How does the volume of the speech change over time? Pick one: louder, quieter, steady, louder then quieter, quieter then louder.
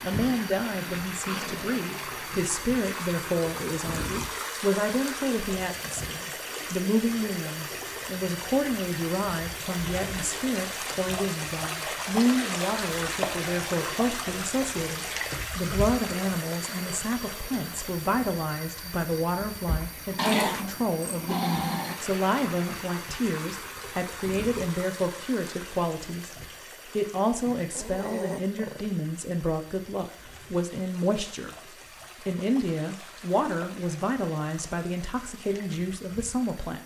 steady.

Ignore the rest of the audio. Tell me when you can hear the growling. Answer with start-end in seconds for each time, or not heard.
0.1-1.9, 20.1-21.9, 27.4-28.9.